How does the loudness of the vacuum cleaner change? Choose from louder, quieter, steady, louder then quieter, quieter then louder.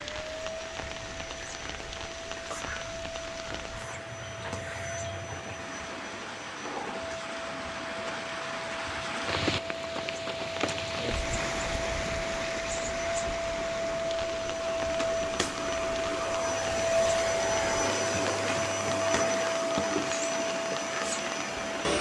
louder.